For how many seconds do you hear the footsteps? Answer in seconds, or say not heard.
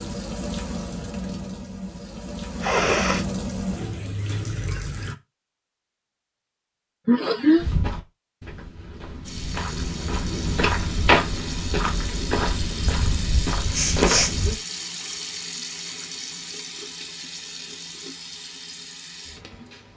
7 s.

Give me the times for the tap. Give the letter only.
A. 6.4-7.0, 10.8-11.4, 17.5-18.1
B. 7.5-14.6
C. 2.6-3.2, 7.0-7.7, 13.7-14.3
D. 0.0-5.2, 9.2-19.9
D.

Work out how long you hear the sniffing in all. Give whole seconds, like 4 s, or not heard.
2 s.